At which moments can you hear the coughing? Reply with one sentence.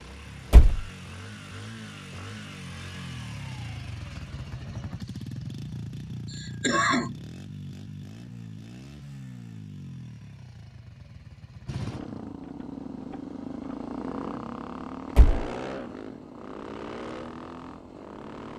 You can hear the coughing from 6.3 to 7.2 s.